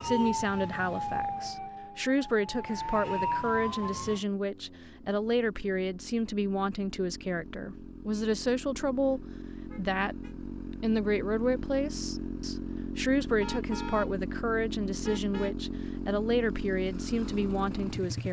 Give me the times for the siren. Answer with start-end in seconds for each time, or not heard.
0.0-4.2.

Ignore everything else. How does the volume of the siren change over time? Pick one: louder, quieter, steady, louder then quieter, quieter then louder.
quieter then louder.